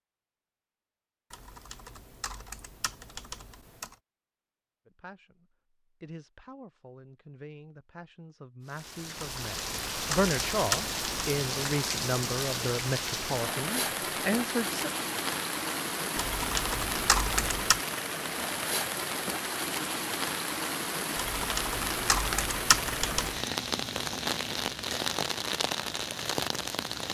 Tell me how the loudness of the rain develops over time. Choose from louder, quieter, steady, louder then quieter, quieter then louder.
steady.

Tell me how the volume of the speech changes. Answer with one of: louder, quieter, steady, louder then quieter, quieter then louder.
louder.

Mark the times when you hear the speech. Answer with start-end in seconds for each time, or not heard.
4.8-14.8.